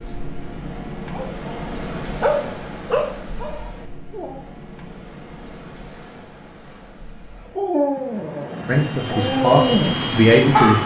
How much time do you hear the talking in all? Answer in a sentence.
You can hear the talking for 2 seconds altogether.